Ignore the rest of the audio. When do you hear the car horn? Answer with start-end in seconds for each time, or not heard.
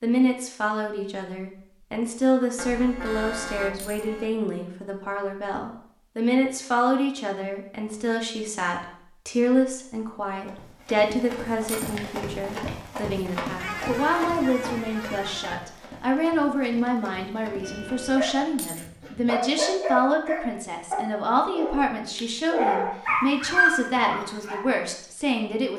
2.5-4.2, 13.6-15.6, 17.4-18.3.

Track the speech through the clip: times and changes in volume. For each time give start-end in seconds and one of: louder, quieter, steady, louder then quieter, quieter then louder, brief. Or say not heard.
0.0-25.7 steady.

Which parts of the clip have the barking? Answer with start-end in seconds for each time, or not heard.
18.1-24.6.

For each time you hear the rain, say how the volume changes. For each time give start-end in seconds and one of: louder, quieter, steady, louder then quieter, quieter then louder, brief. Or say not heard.
not heard.